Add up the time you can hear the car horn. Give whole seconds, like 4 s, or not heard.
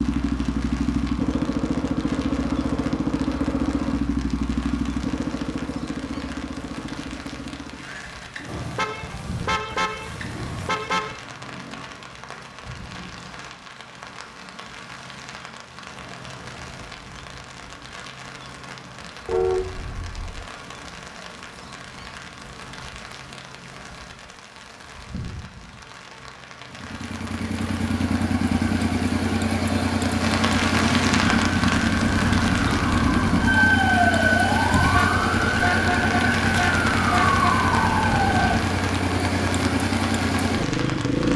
6 s.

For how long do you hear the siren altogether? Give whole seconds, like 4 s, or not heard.
7 s.